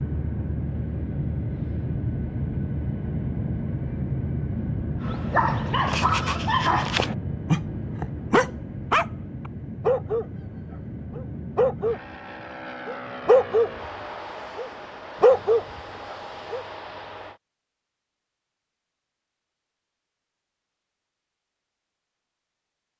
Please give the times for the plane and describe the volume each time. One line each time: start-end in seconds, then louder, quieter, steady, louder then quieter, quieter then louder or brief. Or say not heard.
0.0-17.4 quieter.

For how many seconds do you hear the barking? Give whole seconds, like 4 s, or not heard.
11 s.